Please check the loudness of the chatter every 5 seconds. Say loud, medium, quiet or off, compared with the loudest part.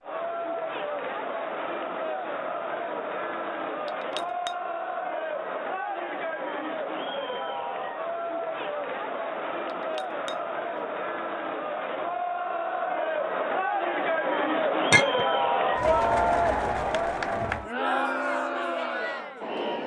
medium, medium, loud, loud.